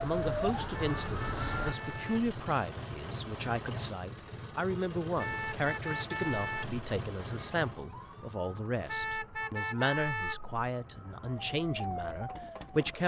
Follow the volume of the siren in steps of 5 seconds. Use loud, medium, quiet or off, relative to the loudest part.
loud, quiet, medium.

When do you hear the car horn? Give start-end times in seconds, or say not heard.
0.7-2.3, 5.2-6.8, 8.8-10.5.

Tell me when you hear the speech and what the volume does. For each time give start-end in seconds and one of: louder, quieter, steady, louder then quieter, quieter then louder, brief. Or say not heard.
0.0-13.0 steady.